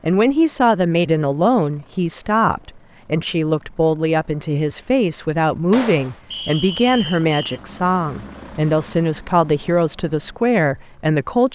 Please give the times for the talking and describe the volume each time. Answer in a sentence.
The talking can be heard from 0.0 to 11.5 s, at a steady volume.